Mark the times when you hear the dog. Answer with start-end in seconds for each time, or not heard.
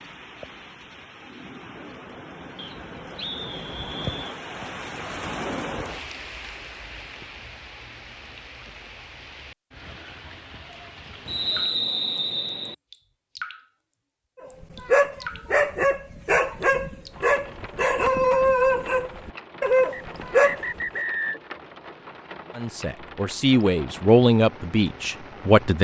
14.4-21.0.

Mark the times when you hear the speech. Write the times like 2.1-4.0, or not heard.
22.6-25.7.